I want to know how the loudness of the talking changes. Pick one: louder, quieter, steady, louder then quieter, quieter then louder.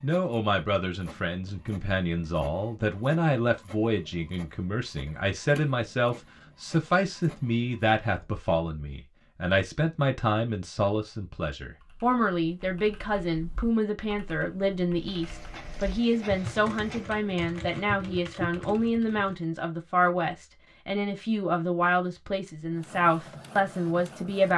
steady.